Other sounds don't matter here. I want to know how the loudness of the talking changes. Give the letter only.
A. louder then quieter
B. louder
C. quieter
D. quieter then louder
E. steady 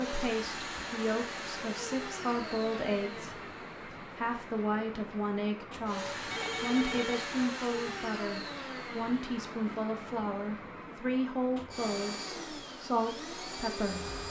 E.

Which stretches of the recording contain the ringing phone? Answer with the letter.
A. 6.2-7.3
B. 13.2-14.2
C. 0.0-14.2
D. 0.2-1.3
A.